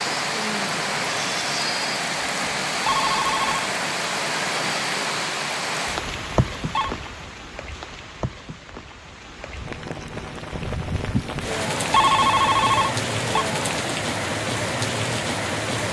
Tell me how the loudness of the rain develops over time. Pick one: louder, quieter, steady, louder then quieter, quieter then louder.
quieter then louder.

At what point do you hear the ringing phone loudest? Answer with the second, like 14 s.
12 s.